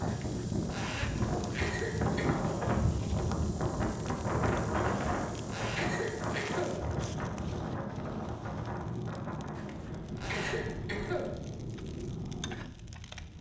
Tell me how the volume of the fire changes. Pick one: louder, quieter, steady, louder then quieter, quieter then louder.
steady.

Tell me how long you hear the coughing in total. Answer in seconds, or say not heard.
3 s.